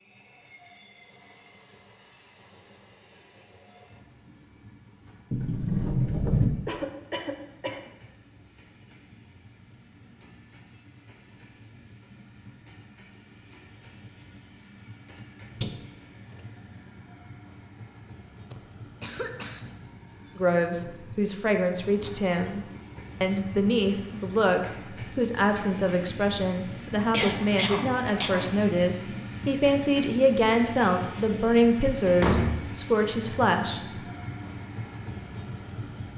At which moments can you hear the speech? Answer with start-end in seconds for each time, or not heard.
20.4-33.8.